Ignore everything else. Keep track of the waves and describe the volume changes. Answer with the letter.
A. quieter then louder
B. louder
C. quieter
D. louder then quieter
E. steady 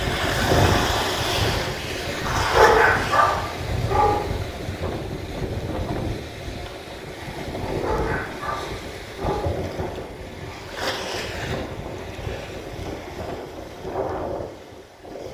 C.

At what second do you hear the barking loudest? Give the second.
3 s.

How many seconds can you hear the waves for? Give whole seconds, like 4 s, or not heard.
15 s.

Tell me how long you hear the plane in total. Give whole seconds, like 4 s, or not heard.
not heard.